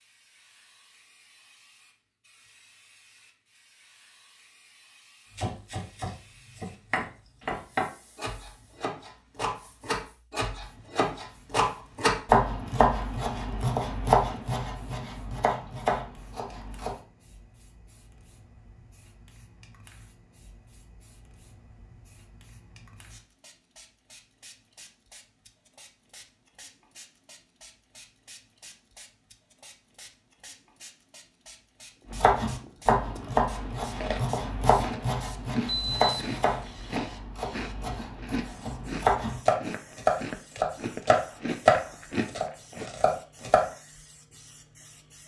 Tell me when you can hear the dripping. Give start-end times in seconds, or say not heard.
not heard.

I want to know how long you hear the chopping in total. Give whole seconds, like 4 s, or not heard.
23 s.